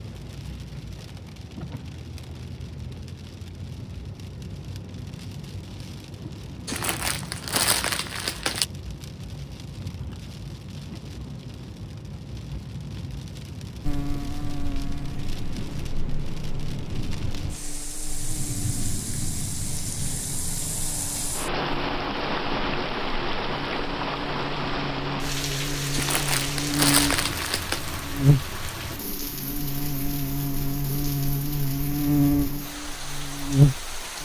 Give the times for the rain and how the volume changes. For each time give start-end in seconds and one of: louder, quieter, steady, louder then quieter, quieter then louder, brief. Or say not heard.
0.0-34.2 louder then quieter.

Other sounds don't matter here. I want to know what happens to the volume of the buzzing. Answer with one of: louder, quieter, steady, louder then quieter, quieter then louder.
louder.